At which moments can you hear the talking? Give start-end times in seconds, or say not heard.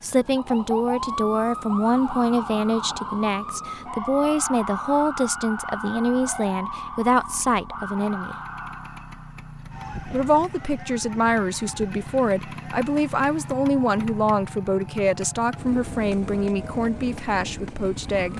0.0-8.3, 10.1-18.3.